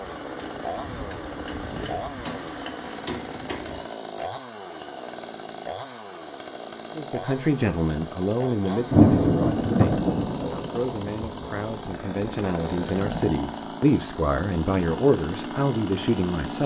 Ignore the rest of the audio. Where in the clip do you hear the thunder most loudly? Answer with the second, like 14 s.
9 s.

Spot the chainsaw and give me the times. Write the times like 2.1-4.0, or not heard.
0.0-16.6.